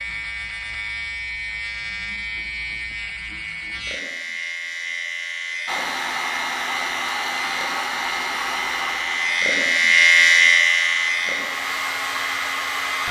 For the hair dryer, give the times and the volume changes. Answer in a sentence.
You can hear the hair dryer from 5.7 to 13.0 s, getting quieter then louder.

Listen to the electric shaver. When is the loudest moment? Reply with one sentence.
The loudest moment of the electric shaver is at 10 seconds.